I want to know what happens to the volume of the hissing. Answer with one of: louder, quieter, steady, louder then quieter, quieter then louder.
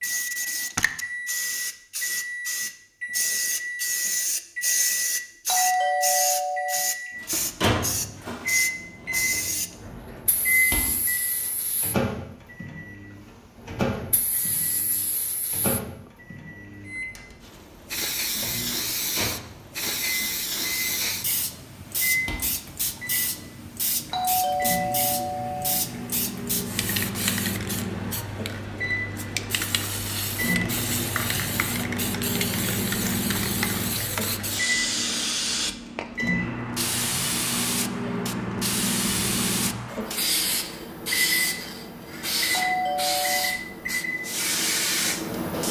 quieter then louder.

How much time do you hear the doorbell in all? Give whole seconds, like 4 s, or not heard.
4 s.